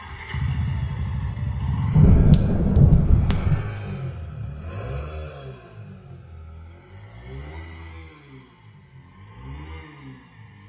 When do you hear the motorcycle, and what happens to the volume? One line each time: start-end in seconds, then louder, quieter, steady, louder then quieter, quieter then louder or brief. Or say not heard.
0.0-10.6 quieter.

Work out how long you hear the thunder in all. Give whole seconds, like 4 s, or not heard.
2 s.